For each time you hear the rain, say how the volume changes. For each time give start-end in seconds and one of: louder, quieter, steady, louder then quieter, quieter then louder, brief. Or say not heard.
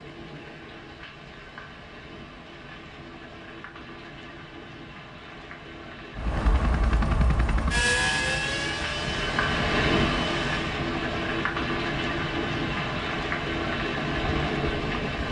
0.0-15.2 louder.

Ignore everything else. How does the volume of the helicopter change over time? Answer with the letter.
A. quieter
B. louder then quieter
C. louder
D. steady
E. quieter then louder
A.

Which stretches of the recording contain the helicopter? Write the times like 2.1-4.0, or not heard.
6.2-10.8.